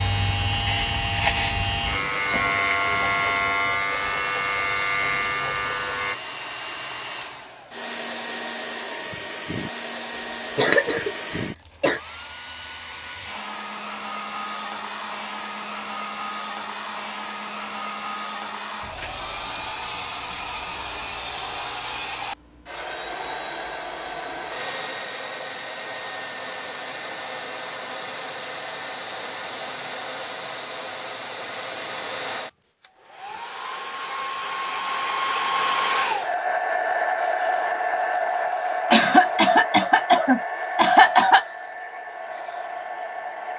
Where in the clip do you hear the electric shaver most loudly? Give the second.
3 s.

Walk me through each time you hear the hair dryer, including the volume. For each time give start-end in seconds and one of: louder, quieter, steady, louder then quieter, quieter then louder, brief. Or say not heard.
0.0-43.5 louder.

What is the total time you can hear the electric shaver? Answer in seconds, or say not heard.
6 s.